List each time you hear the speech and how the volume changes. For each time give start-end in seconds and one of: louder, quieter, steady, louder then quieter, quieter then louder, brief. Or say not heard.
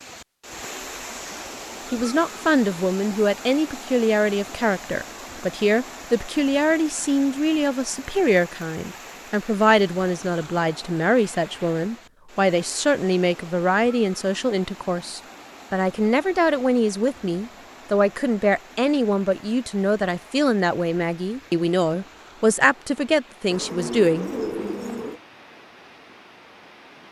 1.9-24.3 steady.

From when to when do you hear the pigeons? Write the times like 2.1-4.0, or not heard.
23.5-25.2.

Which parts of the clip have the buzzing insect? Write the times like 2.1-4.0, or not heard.
not heard.